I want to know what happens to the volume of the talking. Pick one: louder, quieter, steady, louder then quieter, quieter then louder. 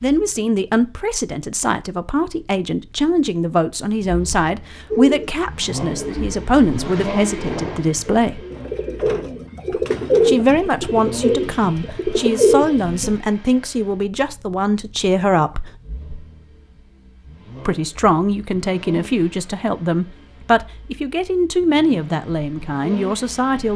steady.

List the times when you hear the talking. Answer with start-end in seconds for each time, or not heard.
0.0-8.4, 10.2-15.8, 17.6-23.7.